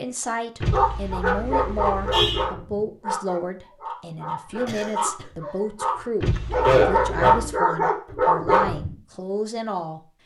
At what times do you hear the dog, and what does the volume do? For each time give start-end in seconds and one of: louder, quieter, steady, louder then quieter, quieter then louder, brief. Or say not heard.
0.7-8.9 quieter then louder.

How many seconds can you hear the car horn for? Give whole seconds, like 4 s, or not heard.
3 s.